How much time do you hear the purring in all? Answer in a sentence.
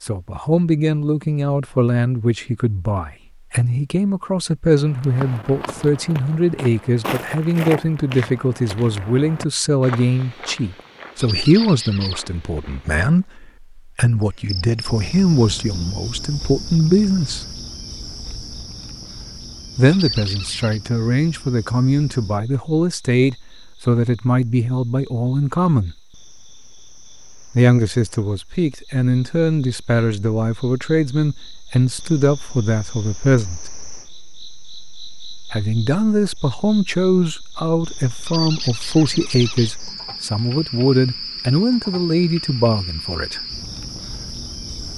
You can't hear the purring here.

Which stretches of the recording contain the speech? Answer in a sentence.
You can hear the speech from 0.0 to 17.4 s, from 19.8 to 25.9 s, from 27.6 to 33.6 s and from 35.5 to 43.5 s.